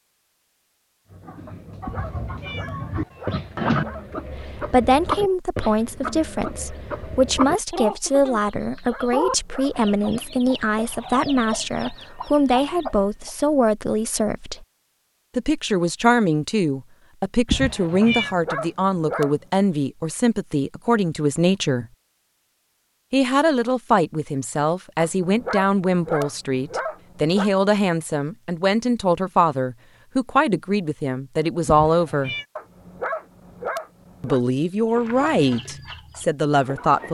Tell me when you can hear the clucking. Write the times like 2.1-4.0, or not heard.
1.1-13.3, 34.9-37.1.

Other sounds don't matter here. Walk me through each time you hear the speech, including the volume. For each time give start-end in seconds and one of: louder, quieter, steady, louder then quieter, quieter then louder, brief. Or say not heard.
4.3-14.7 steady
15.3-21.9 steady
23.1-32.4 steady
34.2-37.1 brief.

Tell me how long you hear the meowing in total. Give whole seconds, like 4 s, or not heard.
4 s.